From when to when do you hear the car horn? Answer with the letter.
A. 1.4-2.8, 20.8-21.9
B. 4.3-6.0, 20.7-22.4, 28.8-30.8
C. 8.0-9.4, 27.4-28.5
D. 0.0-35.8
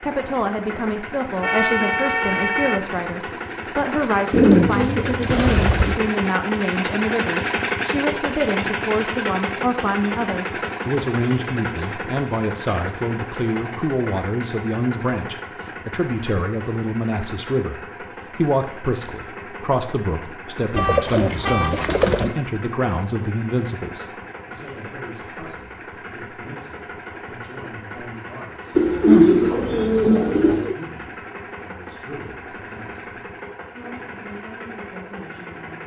A.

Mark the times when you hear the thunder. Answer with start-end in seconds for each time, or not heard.
not heard.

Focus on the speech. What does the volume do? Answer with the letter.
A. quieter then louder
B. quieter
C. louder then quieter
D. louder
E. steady
B.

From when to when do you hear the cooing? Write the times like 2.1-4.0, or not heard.
4.3-6.0, 20.7-22.4, 28.8-30.8.